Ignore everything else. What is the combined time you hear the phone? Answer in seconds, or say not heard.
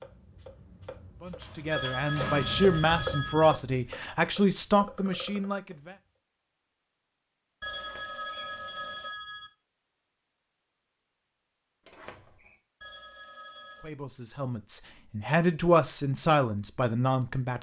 5 s.